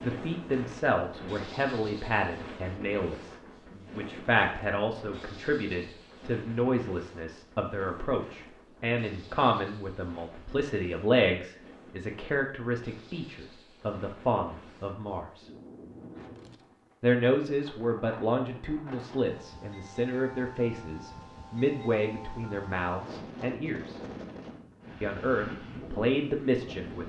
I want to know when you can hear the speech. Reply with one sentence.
The speech can be heard from 0.0 to 15.4 s, from 17.0 to 23.9 s and from 25.0 to 27.0 s.